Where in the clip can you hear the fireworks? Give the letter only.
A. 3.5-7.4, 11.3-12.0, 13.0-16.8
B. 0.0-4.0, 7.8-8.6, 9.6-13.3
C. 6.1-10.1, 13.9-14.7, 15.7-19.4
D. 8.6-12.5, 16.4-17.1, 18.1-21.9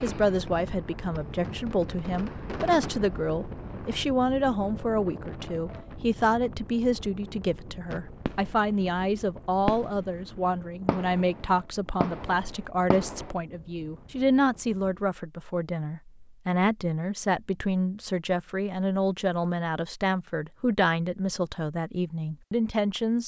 B.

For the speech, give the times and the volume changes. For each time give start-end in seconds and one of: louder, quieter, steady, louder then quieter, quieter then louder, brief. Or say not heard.
0.0-23.2 steady.